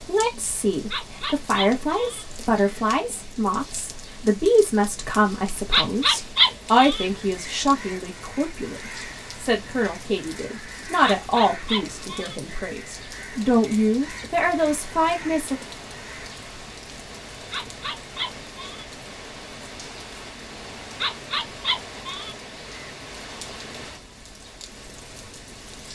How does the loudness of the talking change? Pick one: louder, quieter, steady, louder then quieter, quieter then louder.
steady.